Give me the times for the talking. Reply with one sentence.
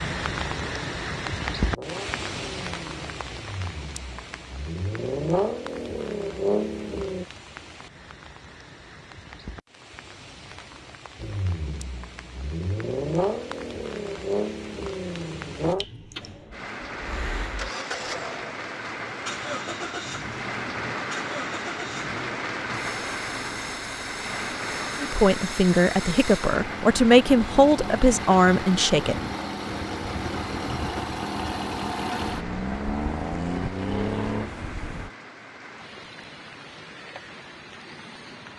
You can hear the talking from 25.0 to 29.1 s.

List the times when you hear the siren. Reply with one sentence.
The siren can't be heard in this clip.